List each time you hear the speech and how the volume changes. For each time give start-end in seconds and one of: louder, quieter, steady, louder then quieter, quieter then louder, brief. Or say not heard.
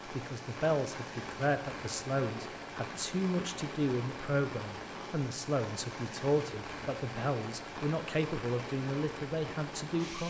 0.1-10.2 steady.